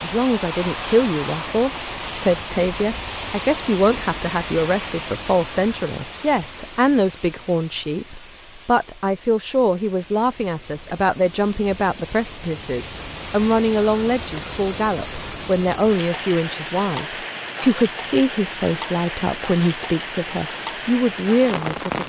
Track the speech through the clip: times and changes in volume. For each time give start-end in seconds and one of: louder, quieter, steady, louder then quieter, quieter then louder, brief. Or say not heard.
0.0-22.0 steady.